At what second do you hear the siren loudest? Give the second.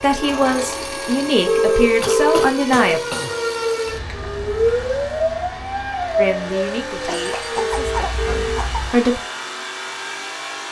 5 s.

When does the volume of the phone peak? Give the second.
2 s.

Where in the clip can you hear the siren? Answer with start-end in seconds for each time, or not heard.
0.0-8.9.